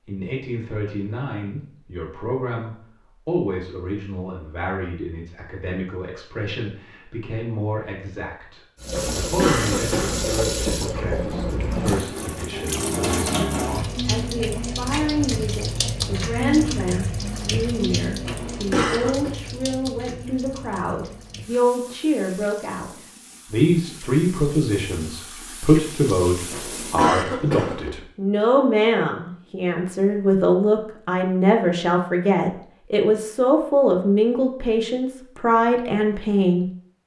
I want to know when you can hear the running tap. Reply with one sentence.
The running tap can be heard from 8.8 to 27.1 s.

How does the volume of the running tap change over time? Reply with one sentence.
The volume of the running tap goes down.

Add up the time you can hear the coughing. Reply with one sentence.
The coughing can be heard for 4 seconds in total.